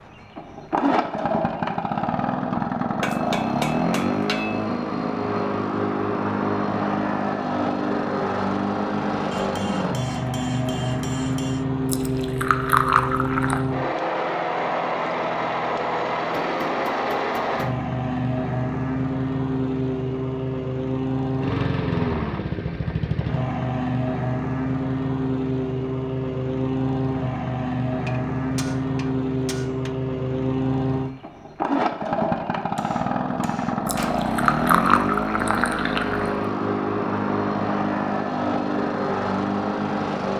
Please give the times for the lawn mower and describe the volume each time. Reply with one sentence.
You can hear the lawn mower from 0.0 to 40.3 s, at a steady volume.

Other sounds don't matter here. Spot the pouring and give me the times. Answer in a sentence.
The pouring can be heard from 11.9 to 13.7 s and from 33.9 to 36.4 s.